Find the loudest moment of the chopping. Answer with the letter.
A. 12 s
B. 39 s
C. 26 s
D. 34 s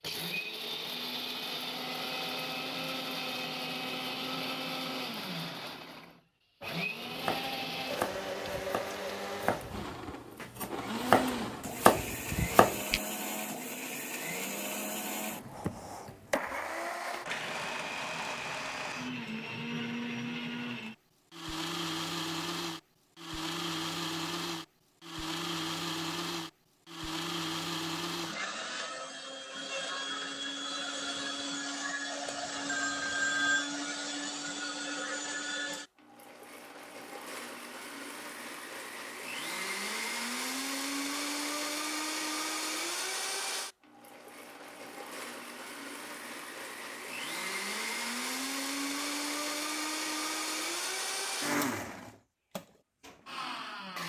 A.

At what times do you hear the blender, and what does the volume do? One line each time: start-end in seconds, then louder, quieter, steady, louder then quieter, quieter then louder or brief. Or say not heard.
0.0-54.0 steady.